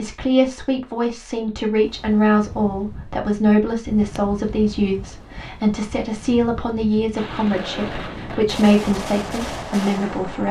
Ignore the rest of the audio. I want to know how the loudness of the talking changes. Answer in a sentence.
The volume of the talking stays about the same.